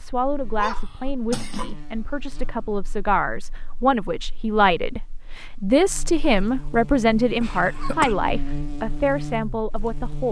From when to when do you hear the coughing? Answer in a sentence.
The coughing can be heard from 0.6 to 1.8 s and from 7.4 to 8.2 s.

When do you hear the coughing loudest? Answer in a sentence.
The volume of the coughing peaks at 8 seconds.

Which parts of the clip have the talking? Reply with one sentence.
The talking can be heard from 0.0 to 10.2 s.